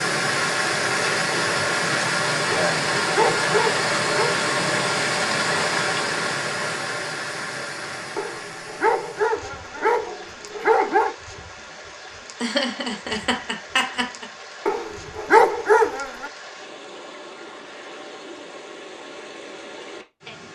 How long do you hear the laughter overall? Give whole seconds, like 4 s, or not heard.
2 s.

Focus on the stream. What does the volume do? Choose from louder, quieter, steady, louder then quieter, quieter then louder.
quieter.